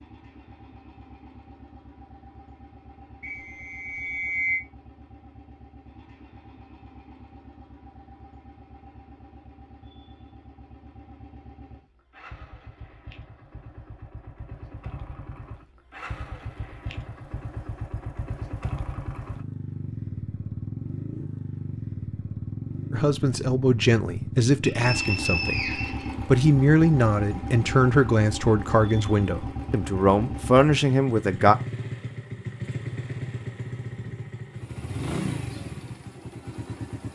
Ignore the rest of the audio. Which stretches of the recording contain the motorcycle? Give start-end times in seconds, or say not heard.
0.0-37.1.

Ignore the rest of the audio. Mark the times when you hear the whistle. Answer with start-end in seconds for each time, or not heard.
3.2-4.6, 24.6-26.1.